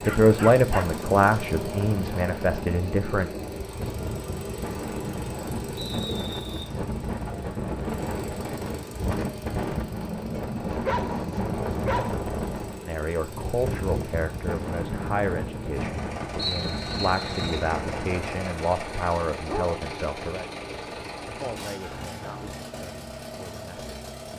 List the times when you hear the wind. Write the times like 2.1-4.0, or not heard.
0.0-18.4.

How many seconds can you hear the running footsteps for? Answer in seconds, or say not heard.
not heard.